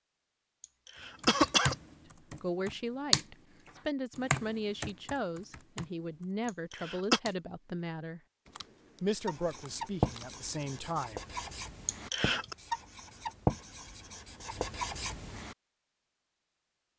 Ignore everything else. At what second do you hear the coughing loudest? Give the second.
1 s.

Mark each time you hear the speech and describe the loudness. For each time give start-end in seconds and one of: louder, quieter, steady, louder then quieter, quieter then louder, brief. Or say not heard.
2.4-8.2 steady
9.0-11.2 brief.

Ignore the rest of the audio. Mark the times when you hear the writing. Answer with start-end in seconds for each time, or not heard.
9.2-15.6.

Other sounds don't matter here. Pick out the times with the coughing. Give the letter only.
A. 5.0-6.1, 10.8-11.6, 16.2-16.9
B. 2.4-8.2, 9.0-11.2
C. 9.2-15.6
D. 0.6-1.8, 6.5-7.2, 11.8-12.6
D.